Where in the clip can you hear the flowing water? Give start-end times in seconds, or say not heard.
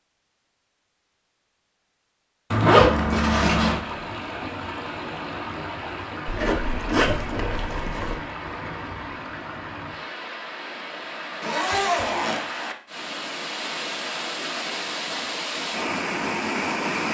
3.6-17.0.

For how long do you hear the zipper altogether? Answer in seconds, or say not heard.
4 s.